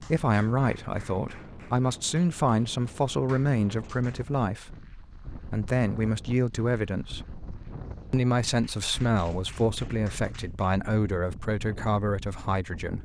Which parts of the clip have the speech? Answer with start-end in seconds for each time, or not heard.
0.0-7.2, 8.1-12.9.